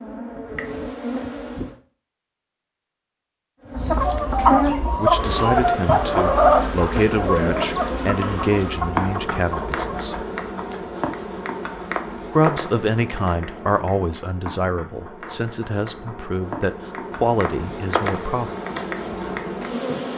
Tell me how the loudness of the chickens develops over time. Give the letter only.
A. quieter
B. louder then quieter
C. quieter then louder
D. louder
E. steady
A.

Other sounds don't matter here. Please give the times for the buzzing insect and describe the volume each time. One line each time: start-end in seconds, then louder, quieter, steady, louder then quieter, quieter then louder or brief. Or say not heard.
0.0-1.8 brief
3.6-20.1 quieter then louder.